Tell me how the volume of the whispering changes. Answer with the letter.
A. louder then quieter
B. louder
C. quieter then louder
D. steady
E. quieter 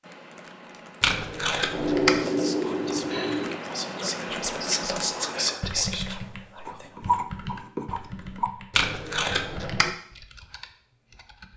B.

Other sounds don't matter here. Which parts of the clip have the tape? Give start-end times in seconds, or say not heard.
1.0-2.2, 8.7-9.9.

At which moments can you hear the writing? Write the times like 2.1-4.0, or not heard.
1.7-3.6, 6.7-8.5.